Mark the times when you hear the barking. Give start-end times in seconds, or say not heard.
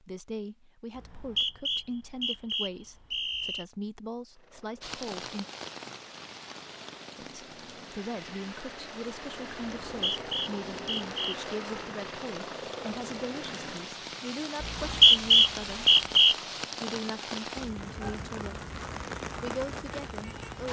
not heard.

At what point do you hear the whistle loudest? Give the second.
15 s.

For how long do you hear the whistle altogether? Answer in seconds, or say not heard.
6 s.